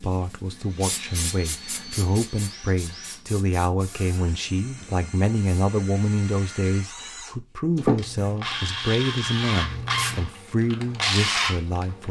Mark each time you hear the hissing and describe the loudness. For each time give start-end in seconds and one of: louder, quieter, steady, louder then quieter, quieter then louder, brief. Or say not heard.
0.8-5.7 quieter
7.8-10.3 brief.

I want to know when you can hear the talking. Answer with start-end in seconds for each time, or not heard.
0.0-12.0.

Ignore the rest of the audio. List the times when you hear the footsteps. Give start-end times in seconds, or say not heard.
not heard.